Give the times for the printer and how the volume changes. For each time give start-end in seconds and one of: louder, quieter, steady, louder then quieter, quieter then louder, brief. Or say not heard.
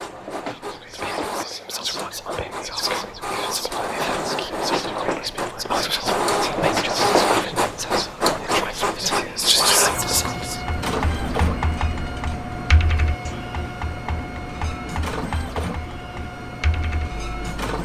0.0-17.8 louder then quieter.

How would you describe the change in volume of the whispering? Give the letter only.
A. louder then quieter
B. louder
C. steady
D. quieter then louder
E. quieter
B.